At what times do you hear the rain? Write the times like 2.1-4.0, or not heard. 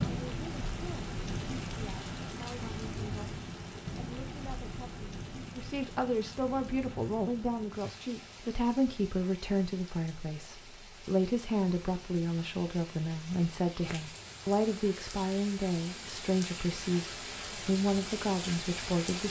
0.0-19.2.